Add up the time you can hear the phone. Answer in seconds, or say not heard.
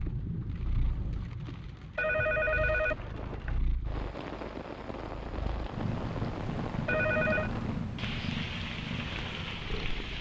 2 s.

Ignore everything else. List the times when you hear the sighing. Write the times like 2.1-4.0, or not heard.
not heard.